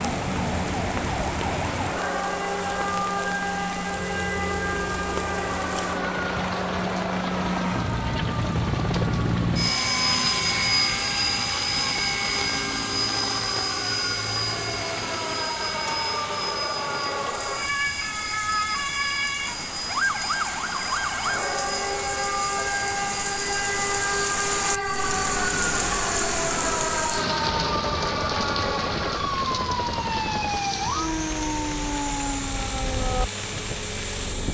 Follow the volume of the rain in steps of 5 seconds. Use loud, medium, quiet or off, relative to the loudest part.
medium, medium, medium, medium, loud, loud, medium.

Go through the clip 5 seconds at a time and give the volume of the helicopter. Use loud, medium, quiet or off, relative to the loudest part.
medium, loud, loud, medium, medium, medium, medium.